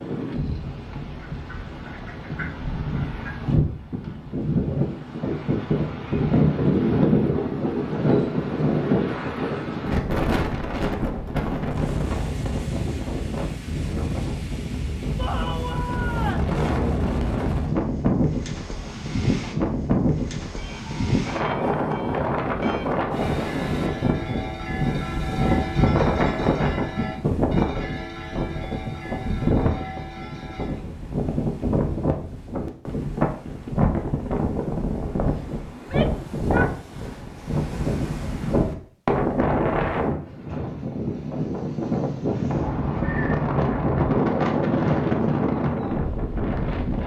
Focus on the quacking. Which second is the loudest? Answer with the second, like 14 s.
43 s.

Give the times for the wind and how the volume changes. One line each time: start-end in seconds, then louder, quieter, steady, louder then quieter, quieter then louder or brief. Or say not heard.
0.0-47.0 steady.